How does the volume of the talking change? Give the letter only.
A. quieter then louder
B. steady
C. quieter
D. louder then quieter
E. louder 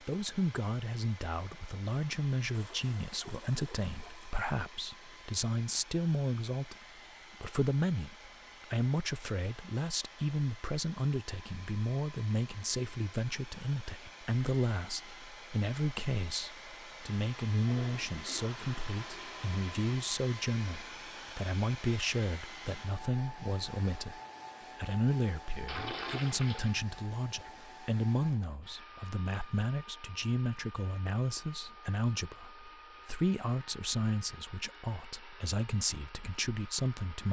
B.